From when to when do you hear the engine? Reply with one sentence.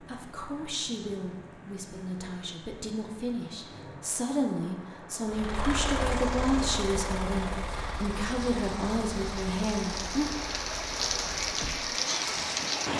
The engine can be heard from 5.3 to 12.9 s.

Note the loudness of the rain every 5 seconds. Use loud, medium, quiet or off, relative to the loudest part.
quiet, medium, loud.